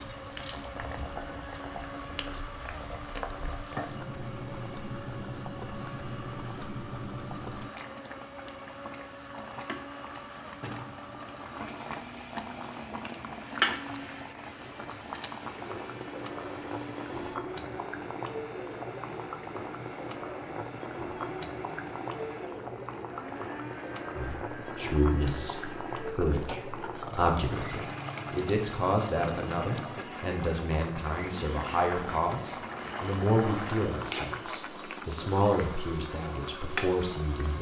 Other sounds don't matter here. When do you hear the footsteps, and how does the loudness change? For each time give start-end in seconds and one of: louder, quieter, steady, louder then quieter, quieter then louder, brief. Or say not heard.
not heard.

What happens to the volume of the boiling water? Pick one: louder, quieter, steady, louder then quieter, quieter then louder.
steady.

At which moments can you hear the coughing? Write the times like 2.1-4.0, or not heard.
not heard.